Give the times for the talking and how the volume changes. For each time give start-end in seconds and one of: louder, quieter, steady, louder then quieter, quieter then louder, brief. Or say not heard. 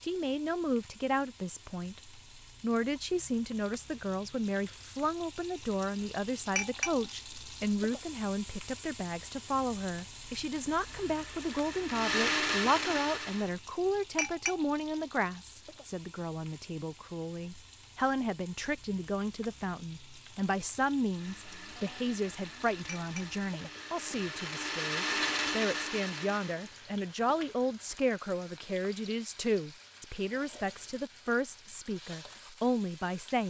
0.0-33.4 steady.